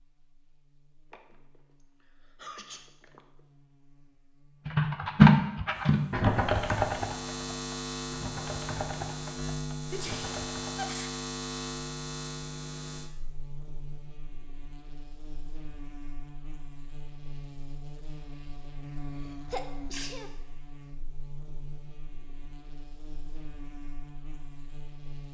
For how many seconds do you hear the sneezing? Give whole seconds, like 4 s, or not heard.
5 s.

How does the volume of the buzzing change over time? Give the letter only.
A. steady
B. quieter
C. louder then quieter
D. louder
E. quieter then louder
C.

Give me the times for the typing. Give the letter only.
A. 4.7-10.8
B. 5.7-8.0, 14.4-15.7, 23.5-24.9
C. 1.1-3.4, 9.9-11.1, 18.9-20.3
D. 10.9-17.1
A.